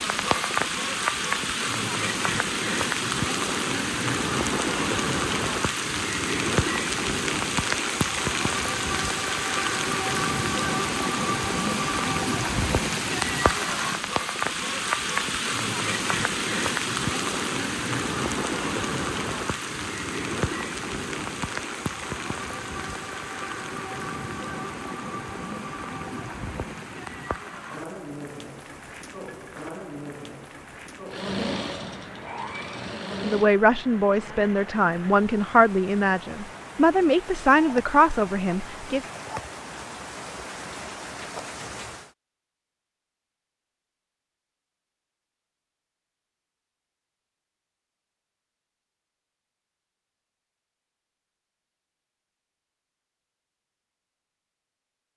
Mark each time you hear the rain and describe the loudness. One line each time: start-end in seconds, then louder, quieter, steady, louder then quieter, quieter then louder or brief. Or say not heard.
0.0-42.1 quieter.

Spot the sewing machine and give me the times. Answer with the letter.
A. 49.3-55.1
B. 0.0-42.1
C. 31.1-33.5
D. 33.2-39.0
C.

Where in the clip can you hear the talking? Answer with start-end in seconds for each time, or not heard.
33.2-39.0.